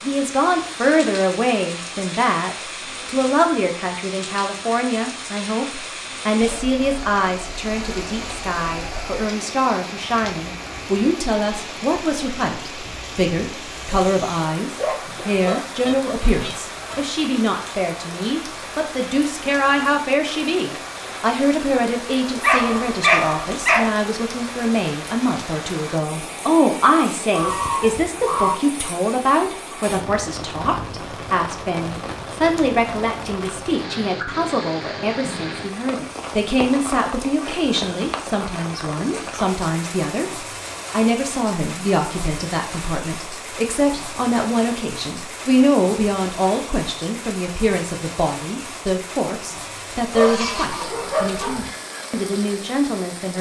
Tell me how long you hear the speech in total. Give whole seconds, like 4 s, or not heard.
53 s.